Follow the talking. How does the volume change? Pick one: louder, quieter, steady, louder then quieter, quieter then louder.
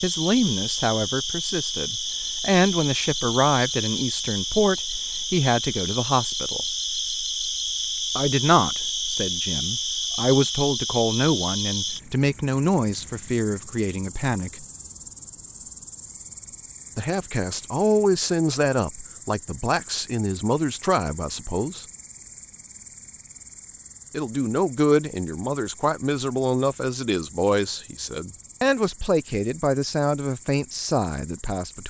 steady.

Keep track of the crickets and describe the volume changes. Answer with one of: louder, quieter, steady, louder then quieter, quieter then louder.
quieter.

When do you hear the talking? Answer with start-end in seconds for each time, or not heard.
0.0-6.6, 8.2-14.7, 16.9-21.9, 24.1-31.8.